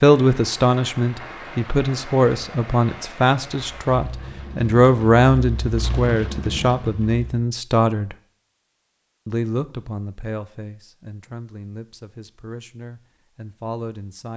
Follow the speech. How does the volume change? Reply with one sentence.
The loudness of the speech goes down.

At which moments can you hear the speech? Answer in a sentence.
You can hear the speech from 0.0 to 8.2 s and from 9.2 to 14.3 s.